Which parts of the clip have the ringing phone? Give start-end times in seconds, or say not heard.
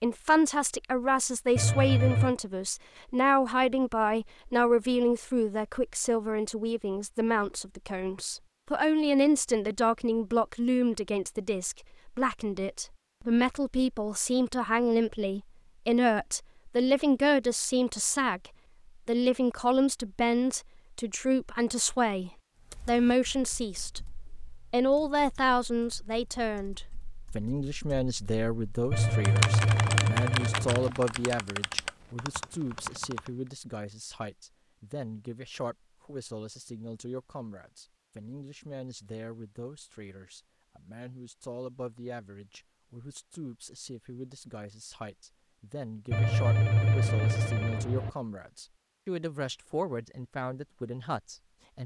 1.6-2.4, 28.9-30.9, 46.1-48.1.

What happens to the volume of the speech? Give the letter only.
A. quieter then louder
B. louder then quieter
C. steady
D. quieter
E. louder
D.